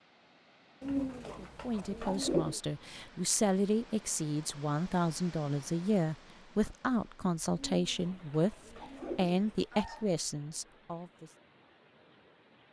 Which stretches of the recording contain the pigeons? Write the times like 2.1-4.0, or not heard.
0.8-2.6, 7.5-9.7.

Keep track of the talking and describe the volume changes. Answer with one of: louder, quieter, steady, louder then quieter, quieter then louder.
steady.